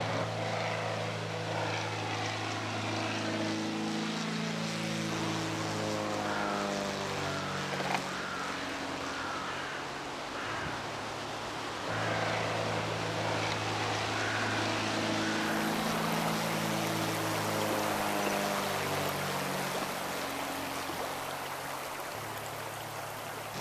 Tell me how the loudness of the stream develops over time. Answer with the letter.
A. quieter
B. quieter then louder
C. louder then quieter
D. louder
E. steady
D.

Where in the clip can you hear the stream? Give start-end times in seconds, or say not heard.
0.0-23.5.